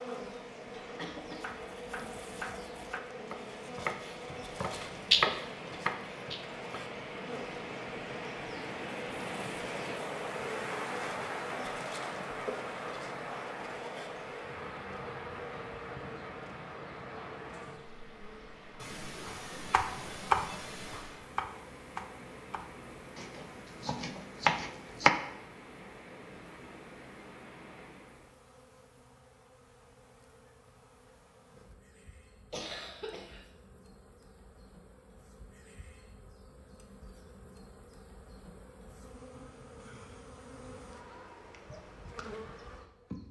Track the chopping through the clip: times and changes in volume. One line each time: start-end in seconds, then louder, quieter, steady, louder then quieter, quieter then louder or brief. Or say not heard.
1.2-6.8 louder then quieter
19.2-25.1 quieter then louder.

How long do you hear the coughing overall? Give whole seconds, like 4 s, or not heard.
4 s.